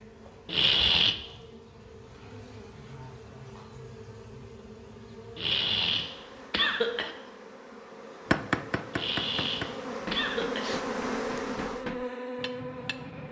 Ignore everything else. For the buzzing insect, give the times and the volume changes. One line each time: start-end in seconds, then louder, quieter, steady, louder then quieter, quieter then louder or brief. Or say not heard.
0.0-13.2 louder.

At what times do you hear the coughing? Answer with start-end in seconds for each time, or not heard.
0.5-1.1, 5.3-7.2, 8.9-10.7.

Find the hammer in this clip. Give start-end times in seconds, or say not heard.
8.3-13.2.